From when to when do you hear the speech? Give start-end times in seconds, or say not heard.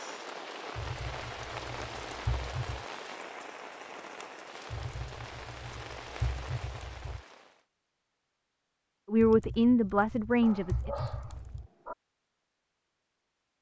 9.1-10.9.